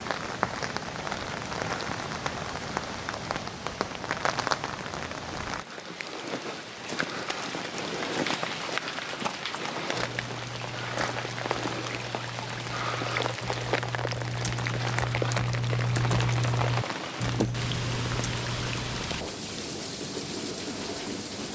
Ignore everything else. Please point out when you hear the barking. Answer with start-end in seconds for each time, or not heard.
not heard.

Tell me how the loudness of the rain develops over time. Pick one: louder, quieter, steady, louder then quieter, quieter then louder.
steady.